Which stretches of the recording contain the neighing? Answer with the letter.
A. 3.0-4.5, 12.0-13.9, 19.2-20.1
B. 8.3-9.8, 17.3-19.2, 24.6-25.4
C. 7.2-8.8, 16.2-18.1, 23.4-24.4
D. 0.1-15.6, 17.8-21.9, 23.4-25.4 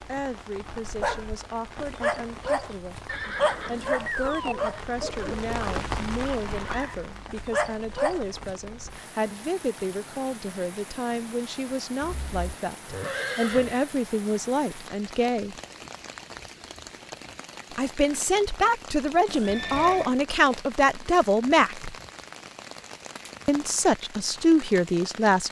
A.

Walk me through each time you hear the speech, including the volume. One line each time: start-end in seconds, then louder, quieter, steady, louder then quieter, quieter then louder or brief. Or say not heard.
0.1-15.6 louder
17.8-21.9 steady
23.4-25.4 brief.